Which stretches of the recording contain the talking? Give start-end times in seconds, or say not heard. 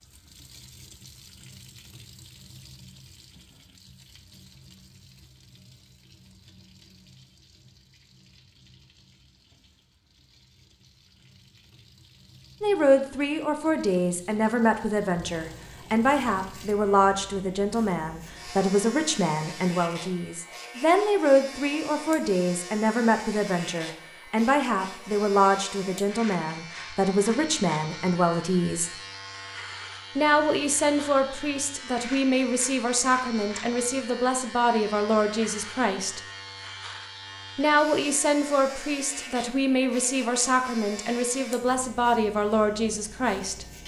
12.6-28.9, 30.1-36.2, 37.5-43.6.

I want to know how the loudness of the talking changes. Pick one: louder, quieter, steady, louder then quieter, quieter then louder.
steady.